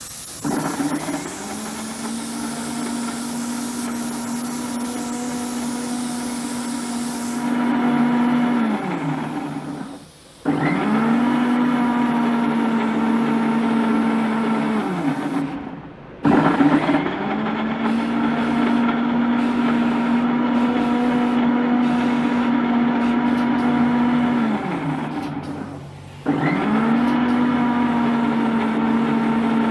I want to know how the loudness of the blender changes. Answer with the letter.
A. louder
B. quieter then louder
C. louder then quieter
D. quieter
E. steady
A.